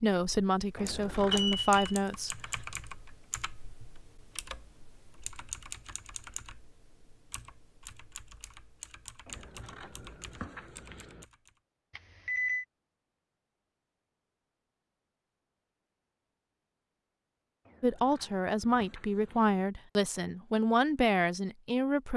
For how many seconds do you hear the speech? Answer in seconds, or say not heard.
7 s.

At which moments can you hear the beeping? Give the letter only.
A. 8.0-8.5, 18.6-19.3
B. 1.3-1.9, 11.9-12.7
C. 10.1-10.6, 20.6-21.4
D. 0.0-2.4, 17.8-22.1
B.